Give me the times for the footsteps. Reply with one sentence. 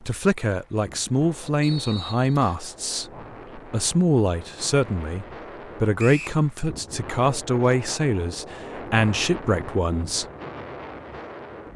You can't hear the footsteps here.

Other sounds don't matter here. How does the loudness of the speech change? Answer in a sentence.
The loudness of the speech stays about the same.